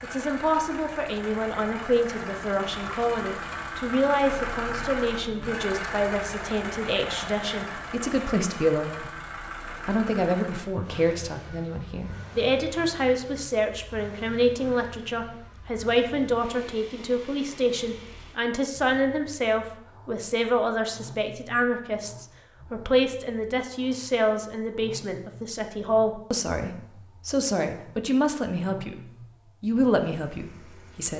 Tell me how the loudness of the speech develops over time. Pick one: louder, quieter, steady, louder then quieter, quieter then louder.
steady.